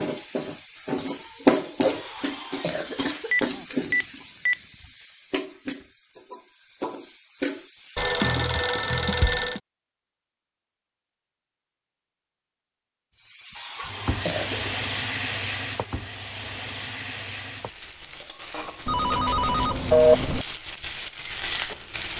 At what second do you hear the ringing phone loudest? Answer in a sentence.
The loudest moment of the ringing phone is at 20 seconds.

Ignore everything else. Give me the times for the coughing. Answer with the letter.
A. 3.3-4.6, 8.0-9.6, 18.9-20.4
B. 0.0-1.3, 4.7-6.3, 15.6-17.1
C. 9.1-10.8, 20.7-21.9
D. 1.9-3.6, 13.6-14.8
D.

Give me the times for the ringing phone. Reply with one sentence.
The ringing phone can be heard from 3.3 to 4.6 s, from 8.0 to 9.6 s and from 18.9 to 20.4 s.